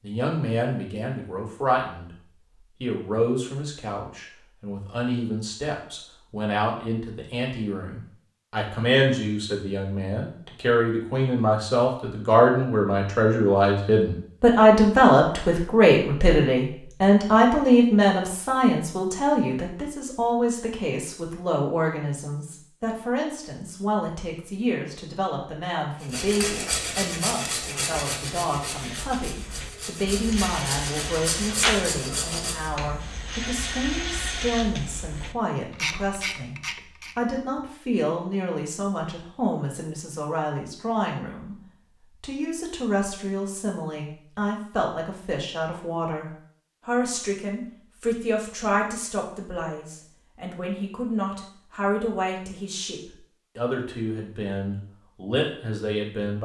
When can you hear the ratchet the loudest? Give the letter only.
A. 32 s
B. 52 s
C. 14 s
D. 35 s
A.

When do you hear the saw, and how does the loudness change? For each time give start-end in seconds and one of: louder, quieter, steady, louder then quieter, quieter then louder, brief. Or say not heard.
26.0-32.7 quieter then louder.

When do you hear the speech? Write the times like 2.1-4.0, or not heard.
0.0-2.1, 2.8-56.3.